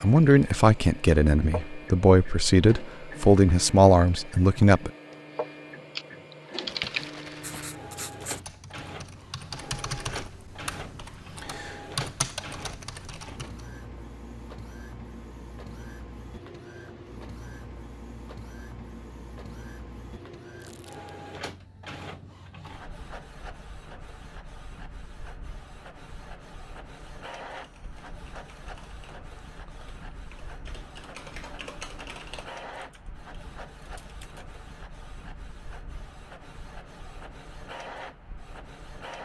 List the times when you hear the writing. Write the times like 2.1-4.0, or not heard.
7.4-8.4.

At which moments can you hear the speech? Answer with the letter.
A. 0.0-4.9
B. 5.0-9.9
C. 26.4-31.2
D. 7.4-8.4
A.